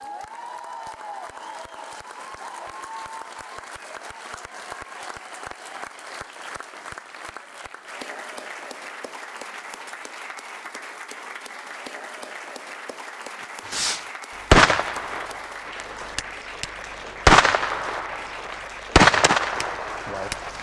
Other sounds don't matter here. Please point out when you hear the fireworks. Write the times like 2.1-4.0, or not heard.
13.7-20.5.